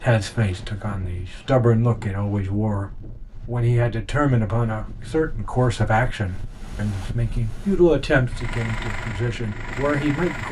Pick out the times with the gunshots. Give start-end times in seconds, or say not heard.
not heard.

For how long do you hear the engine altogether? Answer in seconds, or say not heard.
2 s.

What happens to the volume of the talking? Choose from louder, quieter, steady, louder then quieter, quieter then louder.
steady.